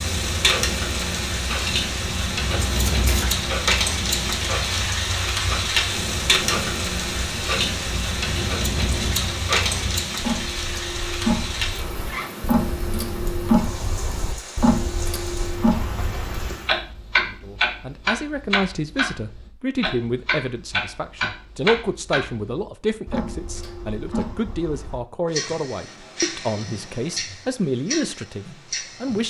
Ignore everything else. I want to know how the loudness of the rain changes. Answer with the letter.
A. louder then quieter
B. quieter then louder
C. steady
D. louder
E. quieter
E.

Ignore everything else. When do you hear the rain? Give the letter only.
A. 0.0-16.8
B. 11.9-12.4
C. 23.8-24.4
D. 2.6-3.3
A.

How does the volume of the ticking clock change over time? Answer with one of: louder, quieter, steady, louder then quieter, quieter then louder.
louder then quieter.